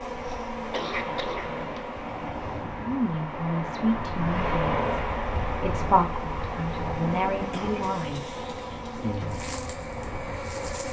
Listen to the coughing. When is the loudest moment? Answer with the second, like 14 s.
1 s.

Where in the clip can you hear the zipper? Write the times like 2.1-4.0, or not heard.
not heard.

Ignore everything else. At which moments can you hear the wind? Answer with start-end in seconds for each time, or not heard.
0.0-10.8.